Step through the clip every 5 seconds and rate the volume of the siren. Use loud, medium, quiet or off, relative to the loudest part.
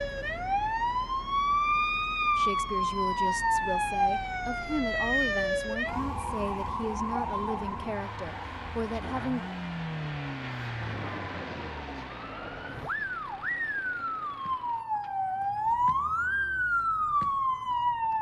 loud, medium, medium, loud.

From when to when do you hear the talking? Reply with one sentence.
You can hear the talking from 2.4 to 9.4 s.